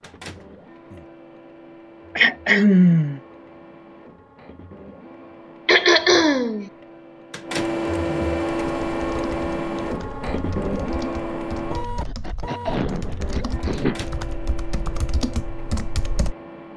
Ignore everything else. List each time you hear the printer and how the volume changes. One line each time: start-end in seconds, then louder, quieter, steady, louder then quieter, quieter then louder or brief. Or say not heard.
0.0-16.7 louder then quieter.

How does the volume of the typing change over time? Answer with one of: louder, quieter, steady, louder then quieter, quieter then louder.
louder.